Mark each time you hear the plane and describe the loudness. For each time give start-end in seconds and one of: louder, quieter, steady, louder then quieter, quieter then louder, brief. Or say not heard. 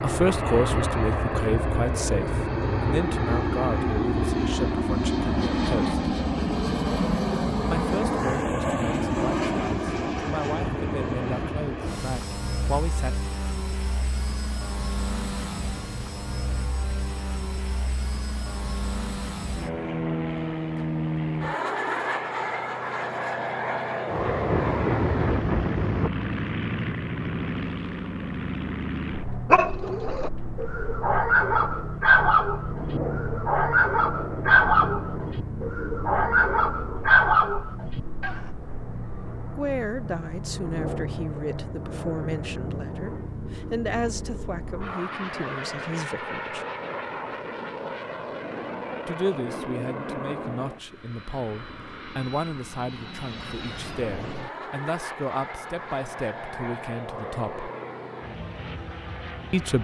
0.0-59.7 quieter.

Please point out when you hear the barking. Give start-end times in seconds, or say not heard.
29.5-38.4.